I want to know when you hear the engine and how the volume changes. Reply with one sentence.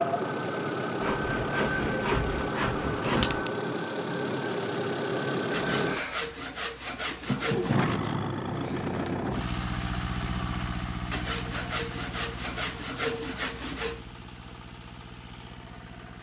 You can hear the engine from 0.0 to 16.1 s, getting quieter.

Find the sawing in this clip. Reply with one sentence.
You can hear the sawing from 1.0 to 3.4 s, from 5.5 to 7.8 s and from 11.1 to 14.1 s.